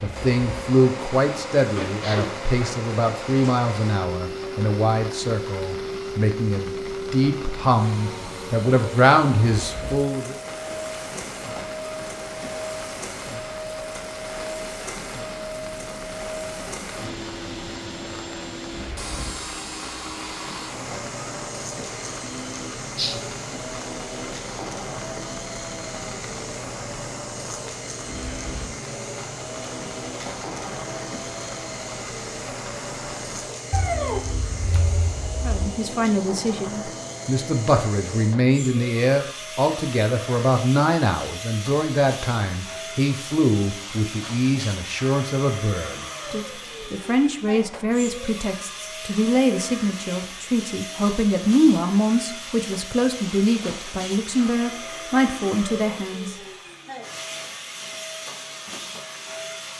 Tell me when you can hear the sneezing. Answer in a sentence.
You can hear the sneezing from 1.6 to 2.3 s.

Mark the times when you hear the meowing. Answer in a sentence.
You can hear the meowing from 22.9 to 23.6 s and from 33.7 to 35.7 s.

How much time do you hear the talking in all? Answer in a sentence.
The talking can be heard for 31 seconds in total.